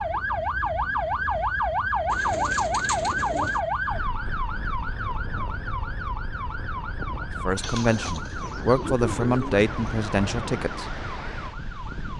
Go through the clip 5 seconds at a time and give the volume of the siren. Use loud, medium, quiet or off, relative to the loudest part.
loud, medium, quiet.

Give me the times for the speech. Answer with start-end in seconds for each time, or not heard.
7.5-11.0.